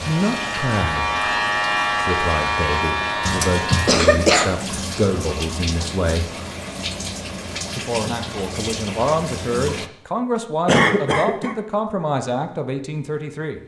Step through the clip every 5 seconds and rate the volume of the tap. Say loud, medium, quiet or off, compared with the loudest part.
loud, loud, off.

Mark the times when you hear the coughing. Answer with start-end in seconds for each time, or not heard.
3.2-4.5, 10.7-11.6.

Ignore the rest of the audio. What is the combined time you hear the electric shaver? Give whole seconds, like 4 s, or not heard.
4 s.